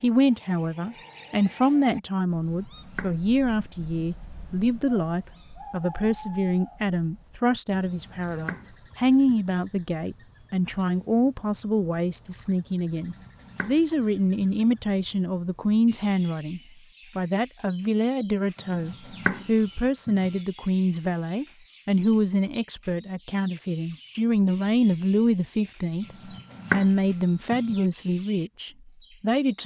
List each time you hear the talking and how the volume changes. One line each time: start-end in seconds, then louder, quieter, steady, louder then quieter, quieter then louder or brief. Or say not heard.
0.0-29.6 steady.